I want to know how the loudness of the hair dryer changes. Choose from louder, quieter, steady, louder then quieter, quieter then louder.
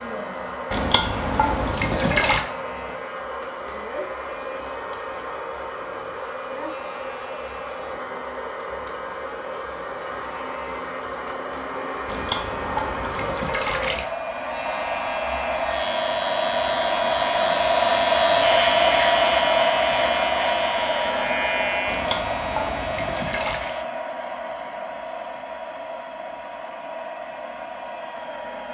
louder then quieter.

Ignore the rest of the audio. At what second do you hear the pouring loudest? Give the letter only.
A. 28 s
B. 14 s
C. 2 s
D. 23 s
C.